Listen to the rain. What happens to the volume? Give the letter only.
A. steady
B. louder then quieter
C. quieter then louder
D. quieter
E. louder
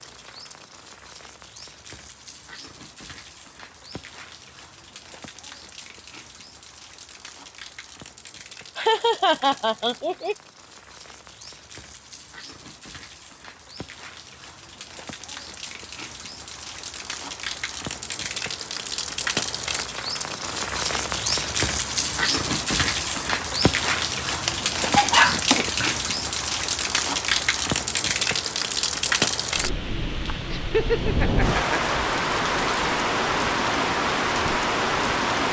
E.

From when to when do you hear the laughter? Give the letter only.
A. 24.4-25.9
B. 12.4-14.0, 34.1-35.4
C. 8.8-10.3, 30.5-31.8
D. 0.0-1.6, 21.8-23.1
C.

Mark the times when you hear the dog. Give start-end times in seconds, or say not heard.
24.4-25.9.